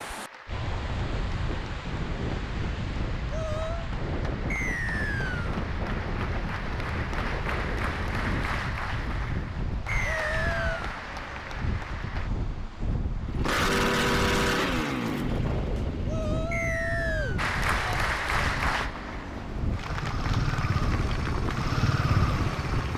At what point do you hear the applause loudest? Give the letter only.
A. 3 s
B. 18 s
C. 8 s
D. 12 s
B.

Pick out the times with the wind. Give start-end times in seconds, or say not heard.
0.0-22.6.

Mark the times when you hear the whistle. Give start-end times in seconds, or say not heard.
4.5-5.5, 9.8-10.8, 16.5-17.4.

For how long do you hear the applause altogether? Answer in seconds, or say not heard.
18 s.